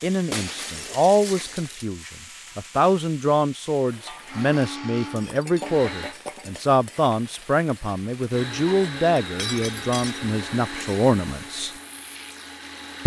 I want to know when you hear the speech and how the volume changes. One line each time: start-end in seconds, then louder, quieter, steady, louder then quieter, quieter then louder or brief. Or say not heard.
0.0-11.7 steady.